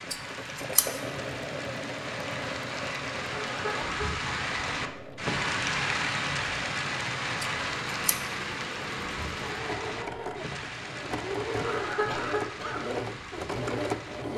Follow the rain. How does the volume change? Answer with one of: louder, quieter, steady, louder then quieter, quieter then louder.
louder then quieter.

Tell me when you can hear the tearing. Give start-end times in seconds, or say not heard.
not heard.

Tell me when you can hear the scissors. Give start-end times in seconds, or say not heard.
0.1-1.0, 7.4-8.2.